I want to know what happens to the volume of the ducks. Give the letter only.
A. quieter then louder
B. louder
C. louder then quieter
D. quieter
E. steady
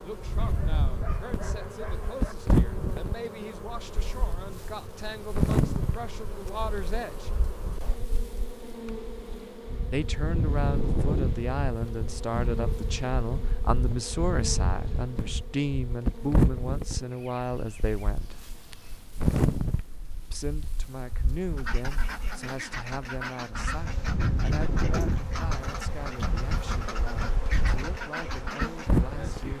E.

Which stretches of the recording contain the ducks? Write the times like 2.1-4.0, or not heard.
21.6-28.9.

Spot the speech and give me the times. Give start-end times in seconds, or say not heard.
0.0-7.3, 9.9-18.4, 20.2-29.5.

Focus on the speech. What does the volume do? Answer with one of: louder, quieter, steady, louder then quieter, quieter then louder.
louder then quieter.